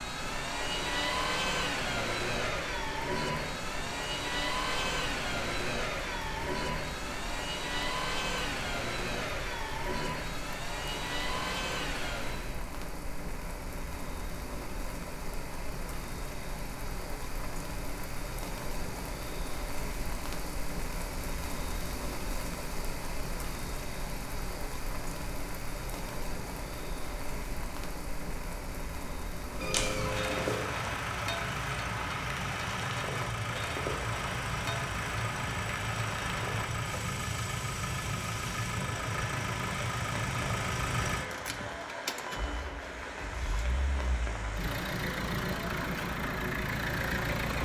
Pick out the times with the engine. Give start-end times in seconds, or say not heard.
0.0-12.7, 29.6-47.6.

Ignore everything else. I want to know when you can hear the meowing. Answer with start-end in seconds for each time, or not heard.
29.6-30.8.